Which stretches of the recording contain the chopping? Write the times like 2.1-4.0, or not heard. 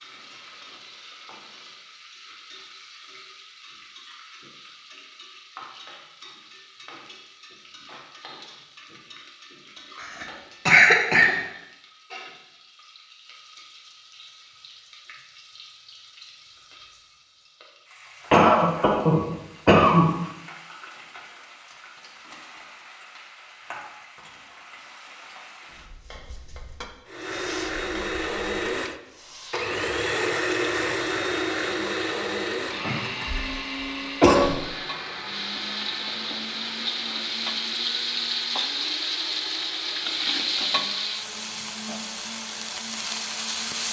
not heard.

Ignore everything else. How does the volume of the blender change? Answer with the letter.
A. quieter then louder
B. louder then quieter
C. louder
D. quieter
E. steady
D.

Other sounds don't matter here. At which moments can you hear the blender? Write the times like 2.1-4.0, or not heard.
27.1-43.8.